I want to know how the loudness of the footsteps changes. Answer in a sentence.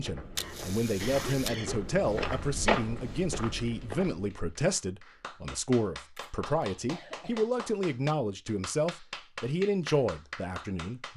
The loudness of the footsteps goes up, then down.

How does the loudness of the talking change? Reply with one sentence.
The loudness of the talking stays about the same.